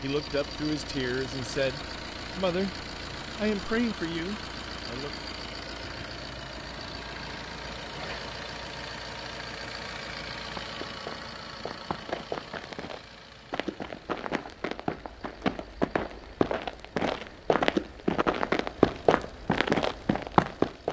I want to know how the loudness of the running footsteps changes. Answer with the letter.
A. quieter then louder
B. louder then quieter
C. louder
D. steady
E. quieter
C.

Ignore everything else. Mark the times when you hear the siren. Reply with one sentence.
You can't hear the siren here.